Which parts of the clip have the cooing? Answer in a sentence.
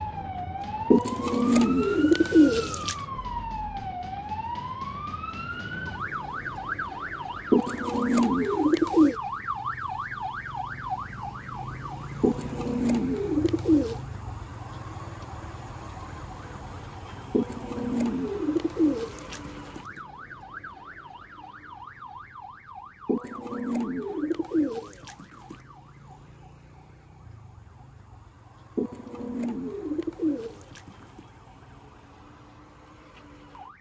The cooing can be heard from 0.9 to 3.0 s, from 7.5 to 9.2 s, from 12.2 to 14.0 s, from 17.3 to 19.9 s, from 23.1 to 25.6 s and from 28.8 to 31.2 s.